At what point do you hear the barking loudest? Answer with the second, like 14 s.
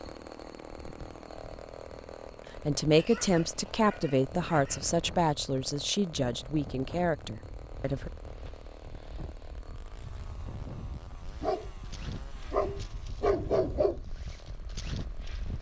13 s.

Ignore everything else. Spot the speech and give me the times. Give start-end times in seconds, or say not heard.
2.6-8.1.